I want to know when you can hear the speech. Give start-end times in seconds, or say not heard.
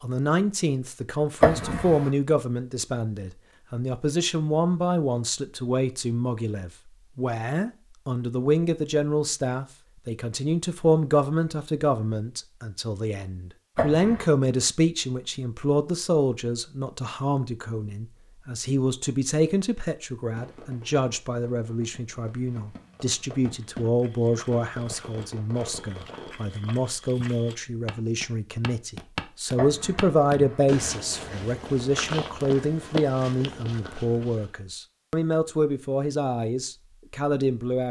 0.0-37.8.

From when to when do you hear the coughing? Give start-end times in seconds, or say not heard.
1.4-2.1, 13.8-14.3, 29.6-30.8.